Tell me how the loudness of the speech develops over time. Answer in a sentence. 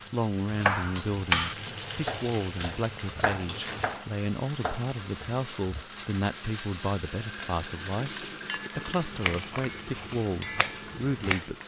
The loudness of the speech stays about the same.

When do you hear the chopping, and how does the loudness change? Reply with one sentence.
The chopping can be heard from 0.5 to 5.8 s, getting quieter; and briefly from 9.1 to 11.4 s.